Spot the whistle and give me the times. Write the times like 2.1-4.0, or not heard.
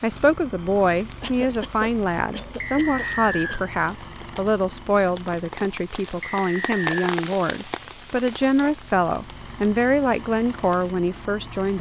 2.6-3.6, 6.2-7.2.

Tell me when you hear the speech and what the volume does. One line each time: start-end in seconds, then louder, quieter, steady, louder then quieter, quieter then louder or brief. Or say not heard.
0.0-11.7 steady.